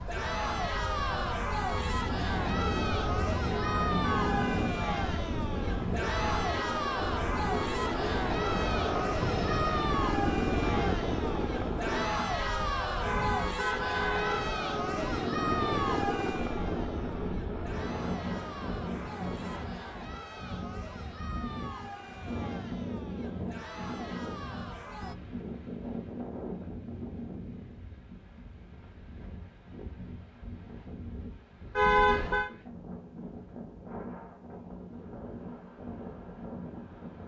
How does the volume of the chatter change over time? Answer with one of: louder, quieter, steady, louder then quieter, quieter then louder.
quieter.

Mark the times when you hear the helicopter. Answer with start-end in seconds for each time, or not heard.
2.5-12.1, 13.6-19.9.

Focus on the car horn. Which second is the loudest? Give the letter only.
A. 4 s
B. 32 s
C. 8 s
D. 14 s
B.